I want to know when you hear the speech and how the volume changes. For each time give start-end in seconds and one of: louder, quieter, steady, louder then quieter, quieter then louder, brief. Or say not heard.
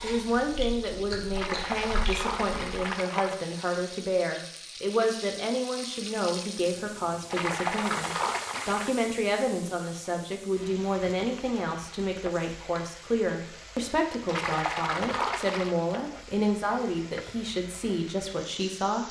0.0-19.0 steady.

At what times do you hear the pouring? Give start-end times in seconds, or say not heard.
1.4-3.4, 7.3-8.9, 14.2-15.8.